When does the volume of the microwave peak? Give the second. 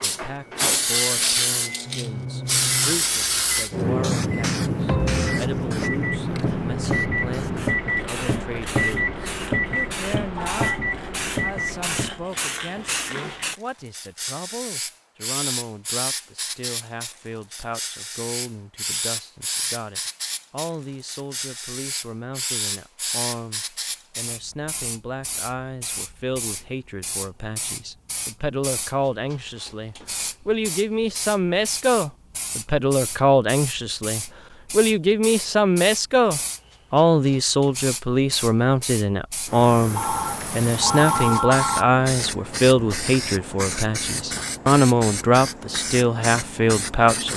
9 s.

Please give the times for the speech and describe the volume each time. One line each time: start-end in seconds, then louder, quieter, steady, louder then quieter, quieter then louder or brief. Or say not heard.
0.0-47.3 louder.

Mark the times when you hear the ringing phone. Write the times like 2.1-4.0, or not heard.
10.3-10.8, 40.0-41.9.